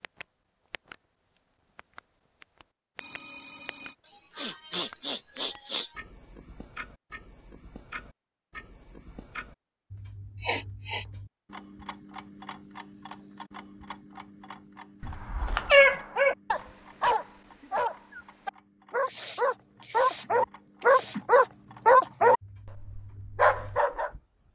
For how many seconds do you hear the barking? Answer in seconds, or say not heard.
9 s.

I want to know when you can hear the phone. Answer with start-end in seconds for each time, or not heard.
3.0-4.0, 15.0-15.7.